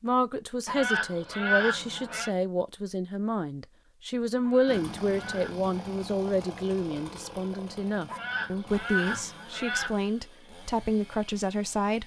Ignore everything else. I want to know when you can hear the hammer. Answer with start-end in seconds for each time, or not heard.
not heard.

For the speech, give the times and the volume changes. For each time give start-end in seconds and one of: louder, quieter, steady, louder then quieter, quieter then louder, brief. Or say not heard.
0.0-12.0 steady.